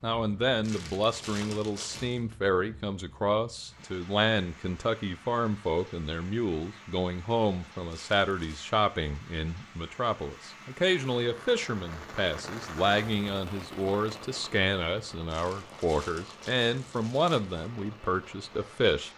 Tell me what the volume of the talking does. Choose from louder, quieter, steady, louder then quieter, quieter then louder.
steady.